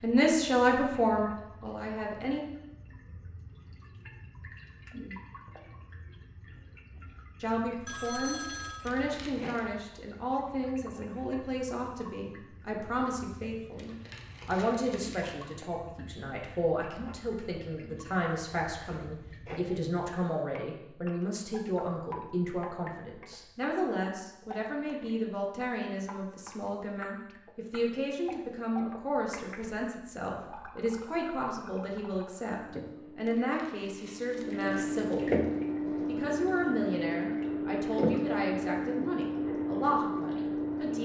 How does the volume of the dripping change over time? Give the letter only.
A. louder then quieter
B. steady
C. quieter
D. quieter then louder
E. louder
E.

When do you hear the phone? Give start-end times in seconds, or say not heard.
7.8-8.9.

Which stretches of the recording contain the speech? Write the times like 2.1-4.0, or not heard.
0.0-2.4, 7.4-35.5, 36.0-40.9.